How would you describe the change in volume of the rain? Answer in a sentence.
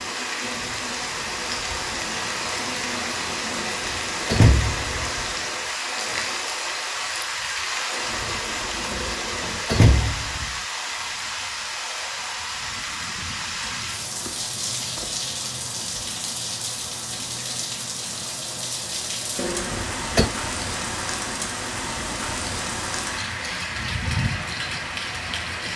The volume of the rain stays about the same.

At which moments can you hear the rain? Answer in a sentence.
You can hear the rain from 0.0 to 25.7 s.